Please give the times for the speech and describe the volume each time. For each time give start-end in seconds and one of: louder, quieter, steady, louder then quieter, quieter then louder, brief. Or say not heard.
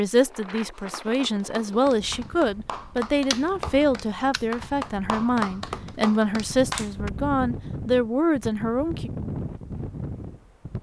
0.0-9.1 steady.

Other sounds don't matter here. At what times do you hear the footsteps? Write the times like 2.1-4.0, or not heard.
not heard.